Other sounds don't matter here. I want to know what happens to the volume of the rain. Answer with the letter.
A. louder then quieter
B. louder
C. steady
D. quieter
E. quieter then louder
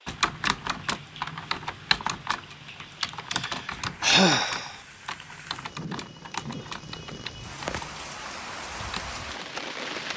B.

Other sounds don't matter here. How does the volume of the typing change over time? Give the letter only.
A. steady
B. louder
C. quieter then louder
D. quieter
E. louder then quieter
D.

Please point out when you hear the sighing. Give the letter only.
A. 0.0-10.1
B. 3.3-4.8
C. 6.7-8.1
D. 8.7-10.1
B.